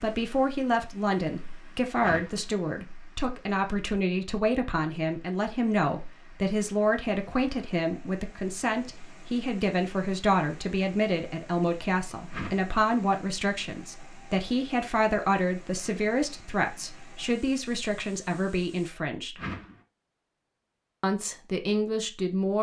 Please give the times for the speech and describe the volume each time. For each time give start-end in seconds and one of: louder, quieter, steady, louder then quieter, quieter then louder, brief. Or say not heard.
0.0-19.4 steady
21.0-22.5 brief.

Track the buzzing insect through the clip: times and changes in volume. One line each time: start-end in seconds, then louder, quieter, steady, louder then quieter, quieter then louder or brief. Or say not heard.
not heard.